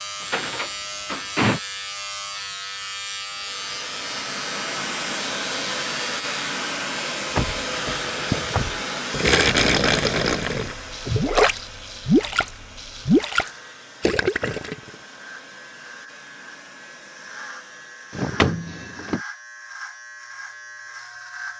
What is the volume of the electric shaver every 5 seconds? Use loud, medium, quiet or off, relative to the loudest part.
loud, loud, medium, medium, medium.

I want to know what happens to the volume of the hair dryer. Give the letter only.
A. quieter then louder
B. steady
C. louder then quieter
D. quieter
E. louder
D.